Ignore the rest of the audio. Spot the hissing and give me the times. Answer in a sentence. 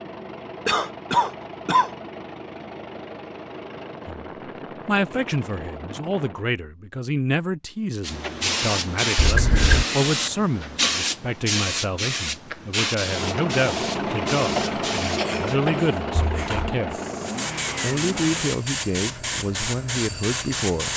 You can hear the hissing from 8.0 to 20.9 s.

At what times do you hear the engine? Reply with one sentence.
The engine can be heard from 0.0 to 6.5 s and from 12.9 to 18.6 s.